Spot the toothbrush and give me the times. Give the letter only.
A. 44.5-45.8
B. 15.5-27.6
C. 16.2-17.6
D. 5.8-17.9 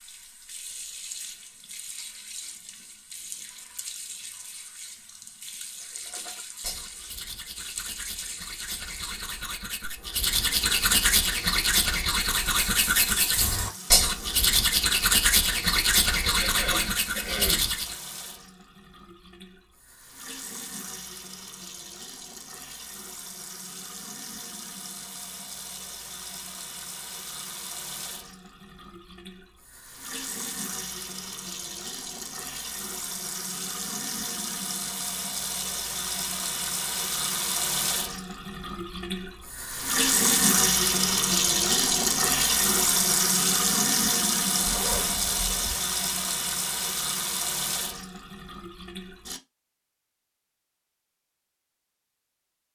D.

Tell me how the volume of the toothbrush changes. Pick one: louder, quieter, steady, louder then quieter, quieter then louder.
louder.